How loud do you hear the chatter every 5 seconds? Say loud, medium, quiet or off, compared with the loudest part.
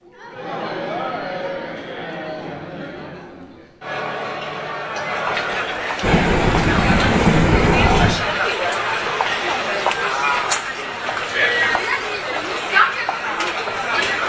medium, loud, loud.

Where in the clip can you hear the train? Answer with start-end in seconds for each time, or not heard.
6.0-8.2.